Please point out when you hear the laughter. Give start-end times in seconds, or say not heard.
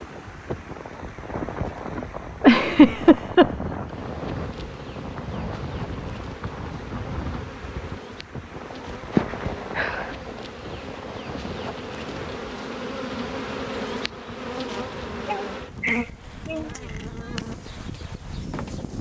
2.4-3.5, 9.1-10.2, 15.2-16.7.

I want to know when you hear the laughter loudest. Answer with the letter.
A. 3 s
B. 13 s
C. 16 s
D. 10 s
A.